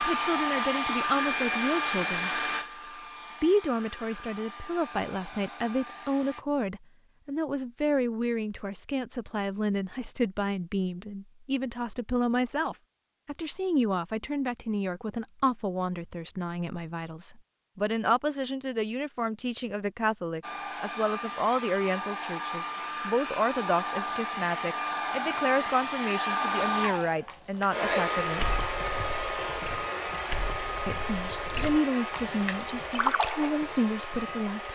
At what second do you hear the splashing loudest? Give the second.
33 s.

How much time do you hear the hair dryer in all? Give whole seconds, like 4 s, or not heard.
21 s.